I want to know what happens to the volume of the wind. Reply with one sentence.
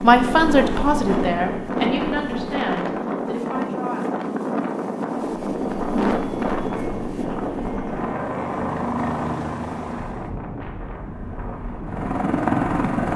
The volume of the wind goes down.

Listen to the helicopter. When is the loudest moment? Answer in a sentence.
The loudest moment of the helicopter is at 13 seconds.